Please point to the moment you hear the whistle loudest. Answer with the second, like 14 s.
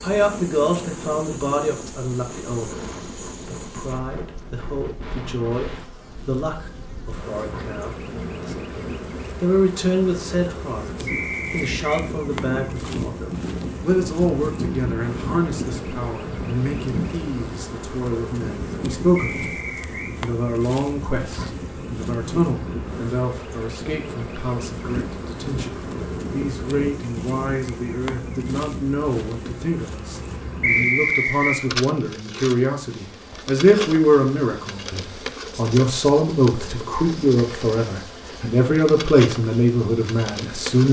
31 s.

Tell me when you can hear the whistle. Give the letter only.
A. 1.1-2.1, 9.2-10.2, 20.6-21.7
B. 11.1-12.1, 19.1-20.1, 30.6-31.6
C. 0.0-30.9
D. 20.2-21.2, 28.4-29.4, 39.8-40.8
B.